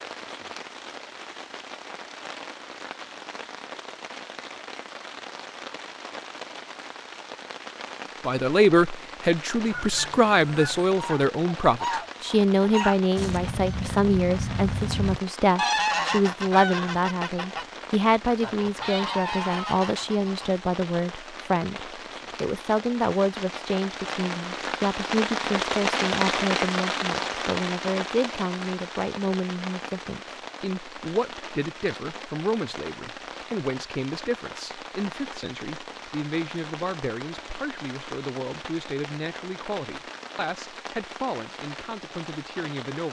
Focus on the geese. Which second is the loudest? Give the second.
16 s.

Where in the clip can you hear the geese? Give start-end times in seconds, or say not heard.
9.7-17.6, 18.4-20.5.